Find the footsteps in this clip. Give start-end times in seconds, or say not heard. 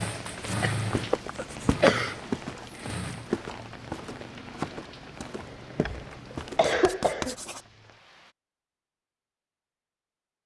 0.1-6.8.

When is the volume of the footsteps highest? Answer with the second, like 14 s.
2 s.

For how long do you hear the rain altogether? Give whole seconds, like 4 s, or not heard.
8 s.